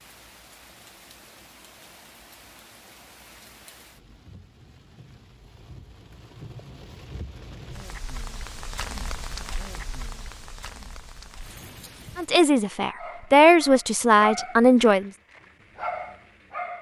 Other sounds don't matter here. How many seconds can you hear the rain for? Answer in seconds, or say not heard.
12 s.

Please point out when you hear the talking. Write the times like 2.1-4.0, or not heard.
12.2-15.1.